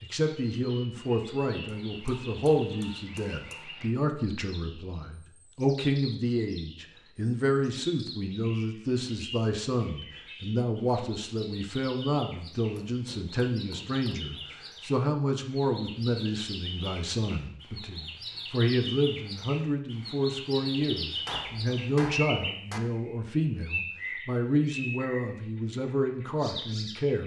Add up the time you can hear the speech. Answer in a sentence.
The speech can be heard for 27 seconds in total.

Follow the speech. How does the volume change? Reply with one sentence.
The loudness of the speech stays about the same.